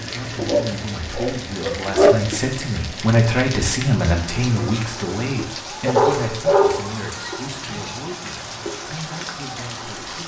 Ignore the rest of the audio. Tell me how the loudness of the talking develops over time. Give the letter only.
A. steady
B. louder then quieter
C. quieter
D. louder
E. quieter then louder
B.